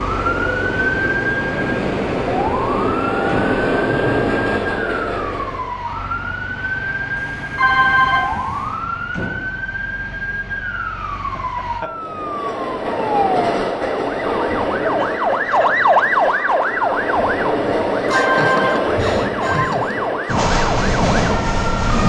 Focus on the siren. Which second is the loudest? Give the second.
16 s.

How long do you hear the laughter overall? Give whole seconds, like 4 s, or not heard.
5 s.